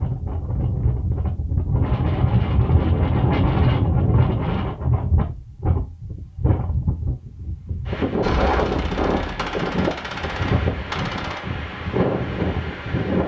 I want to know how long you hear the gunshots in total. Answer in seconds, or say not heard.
3 s.